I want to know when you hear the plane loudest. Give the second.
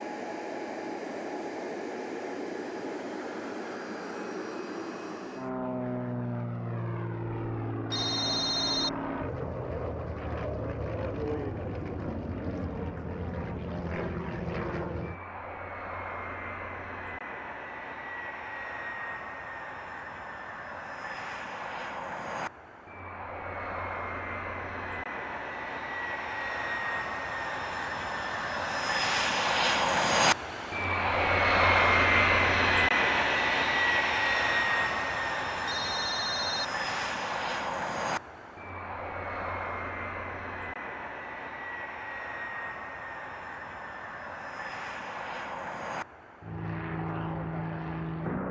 32 s.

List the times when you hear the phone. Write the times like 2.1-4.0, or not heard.
7.9-8.9, 35.6-36.6.